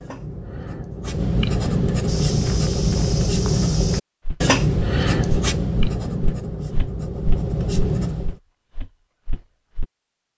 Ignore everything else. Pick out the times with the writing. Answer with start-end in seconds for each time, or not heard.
0.0-8.3.